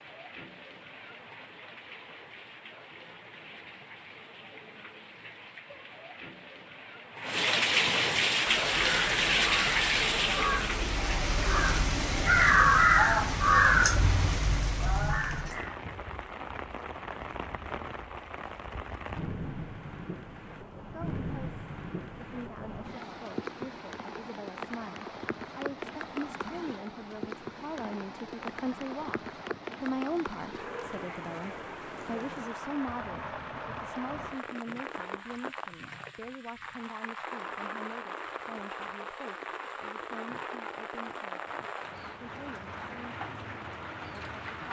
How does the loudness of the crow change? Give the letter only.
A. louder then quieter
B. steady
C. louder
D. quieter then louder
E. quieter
A.